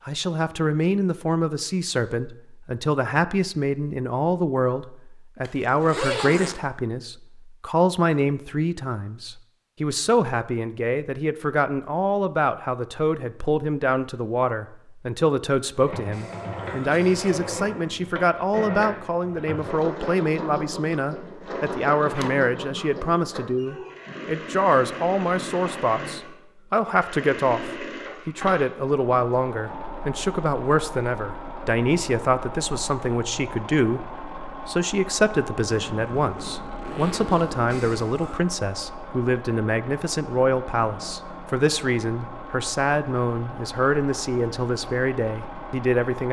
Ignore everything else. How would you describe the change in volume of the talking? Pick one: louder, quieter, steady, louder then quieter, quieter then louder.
steady.